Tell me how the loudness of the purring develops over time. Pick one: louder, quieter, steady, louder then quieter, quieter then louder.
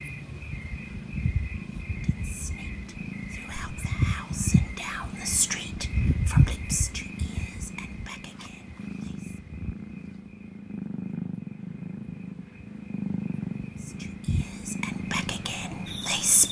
louder.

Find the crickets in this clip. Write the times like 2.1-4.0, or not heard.
0.0-16.4.